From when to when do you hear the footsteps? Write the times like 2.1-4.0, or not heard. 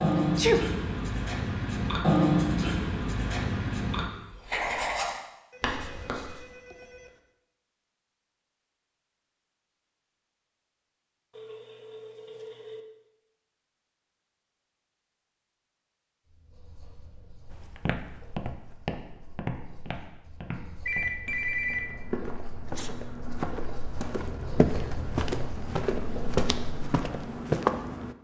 17.5-28.1.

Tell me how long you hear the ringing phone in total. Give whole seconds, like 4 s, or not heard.
4 s.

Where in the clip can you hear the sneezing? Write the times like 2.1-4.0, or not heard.
0.1-0.7, 22.6-23.6.